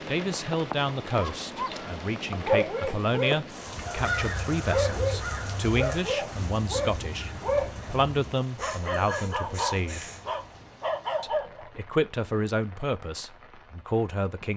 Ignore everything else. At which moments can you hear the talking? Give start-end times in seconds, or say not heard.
0.1-10.1, 11.2-14.5.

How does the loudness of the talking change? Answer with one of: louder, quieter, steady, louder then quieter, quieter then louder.
steady.